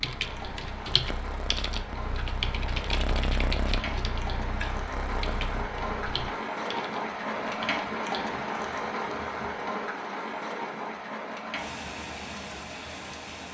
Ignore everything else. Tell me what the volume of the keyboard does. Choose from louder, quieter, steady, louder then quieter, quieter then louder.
quieter.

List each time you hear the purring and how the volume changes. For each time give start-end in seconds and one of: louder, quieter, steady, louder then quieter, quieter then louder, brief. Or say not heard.
0.1-6.2 louder then quieter.